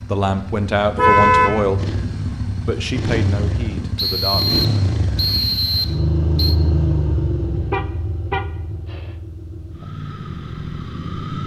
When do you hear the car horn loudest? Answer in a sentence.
The volume of the car horn peaks at 1 second.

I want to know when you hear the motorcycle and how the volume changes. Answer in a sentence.
The motorcycle can be heard from 0.0 to 11.4 s, getting louder then quieter.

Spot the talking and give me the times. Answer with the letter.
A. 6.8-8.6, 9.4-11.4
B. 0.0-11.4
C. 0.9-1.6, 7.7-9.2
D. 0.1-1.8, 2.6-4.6
D.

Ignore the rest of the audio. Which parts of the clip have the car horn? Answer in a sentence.
You can hear the car horn from 0.9 to 1.6 s and from 7.7 to 9.2 s.